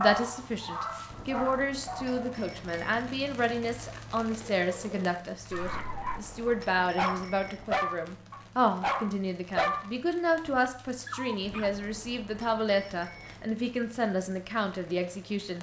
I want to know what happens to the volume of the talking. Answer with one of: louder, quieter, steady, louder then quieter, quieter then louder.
steady.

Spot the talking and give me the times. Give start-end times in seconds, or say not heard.
0.0-15.5.